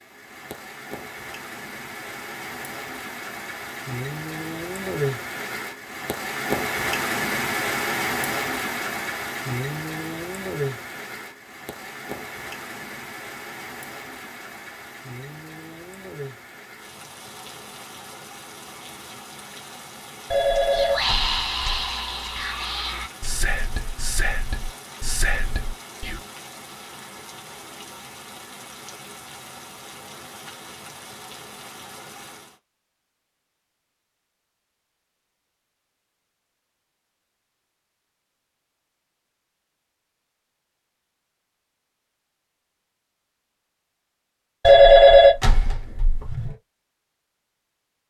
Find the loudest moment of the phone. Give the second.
45 s.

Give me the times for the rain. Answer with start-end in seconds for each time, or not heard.
0.0-32.6.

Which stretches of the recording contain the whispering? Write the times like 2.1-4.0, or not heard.
20.7-26.2.